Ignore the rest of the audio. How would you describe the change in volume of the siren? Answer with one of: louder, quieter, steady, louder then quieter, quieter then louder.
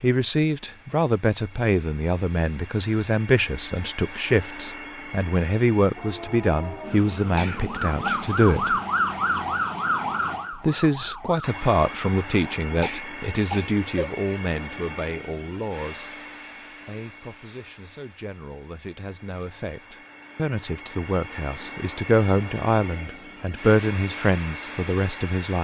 louder then quieter.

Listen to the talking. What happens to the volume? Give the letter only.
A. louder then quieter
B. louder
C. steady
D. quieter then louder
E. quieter
D.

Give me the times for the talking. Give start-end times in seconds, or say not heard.
0.0-8.8, 10.6-25.5.